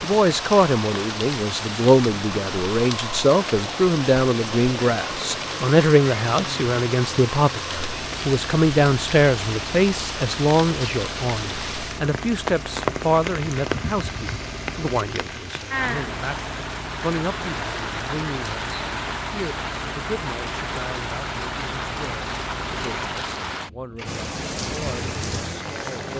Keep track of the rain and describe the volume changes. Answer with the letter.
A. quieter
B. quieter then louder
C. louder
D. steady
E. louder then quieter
D.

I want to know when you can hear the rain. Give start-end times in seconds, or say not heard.
0.0-26.1.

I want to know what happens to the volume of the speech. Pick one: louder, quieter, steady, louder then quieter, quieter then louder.
quieter.